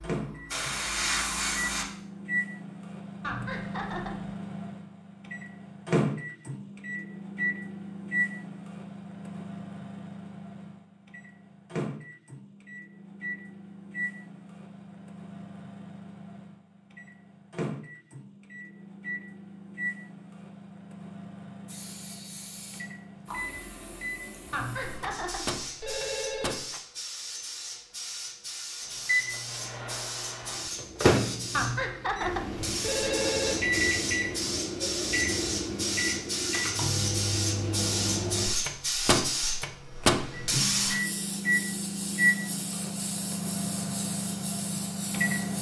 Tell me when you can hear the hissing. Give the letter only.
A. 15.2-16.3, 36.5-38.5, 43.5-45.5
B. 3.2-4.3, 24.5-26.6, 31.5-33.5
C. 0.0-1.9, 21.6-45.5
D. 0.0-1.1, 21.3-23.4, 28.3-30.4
C.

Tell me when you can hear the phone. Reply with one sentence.
The phone can be heard from 3.2 to 4.3 s, from 24.5 to 26.6 s and from 31.5 to 33.5 s.